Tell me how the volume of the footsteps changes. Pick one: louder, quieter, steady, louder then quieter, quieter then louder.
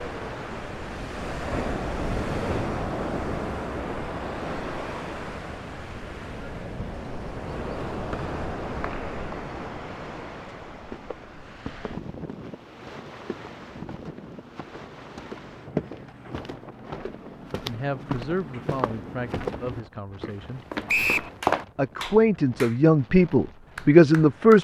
louder.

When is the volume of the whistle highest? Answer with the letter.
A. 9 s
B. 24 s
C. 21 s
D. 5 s
C.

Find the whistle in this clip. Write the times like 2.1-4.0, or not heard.
8.1-9.3, 20.9-21.3.